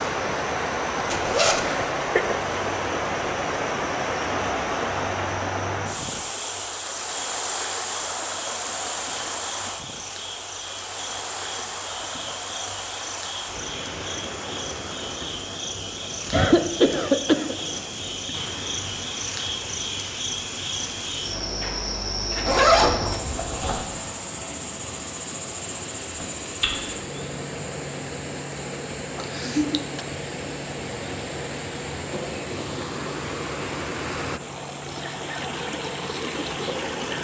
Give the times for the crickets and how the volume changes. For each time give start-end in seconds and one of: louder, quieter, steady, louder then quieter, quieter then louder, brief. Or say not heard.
0.0-37.1 louder then quieter.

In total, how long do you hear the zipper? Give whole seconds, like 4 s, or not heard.
2 s.